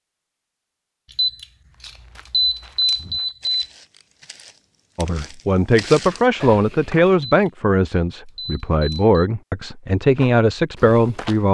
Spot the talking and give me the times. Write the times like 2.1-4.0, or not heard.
5.0-11.4.